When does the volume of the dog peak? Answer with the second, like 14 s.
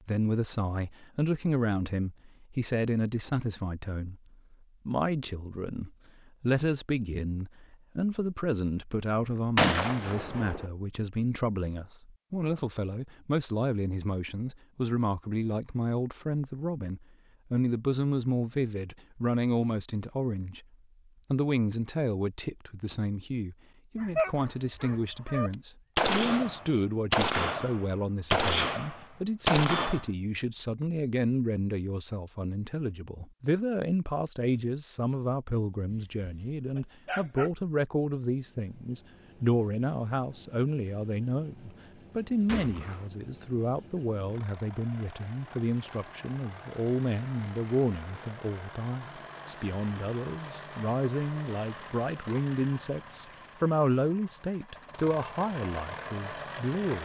24 s.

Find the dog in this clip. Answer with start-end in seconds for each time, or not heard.
23.9-25.5, 35.9-37.5.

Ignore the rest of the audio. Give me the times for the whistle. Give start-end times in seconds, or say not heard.
not heard.